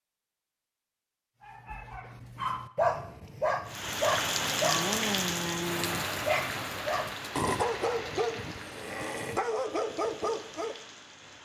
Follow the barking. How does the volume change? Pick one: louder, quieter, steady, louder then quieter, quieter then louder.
steady.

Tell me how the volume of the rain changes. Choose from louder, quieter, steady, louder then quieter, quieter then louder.
quieter.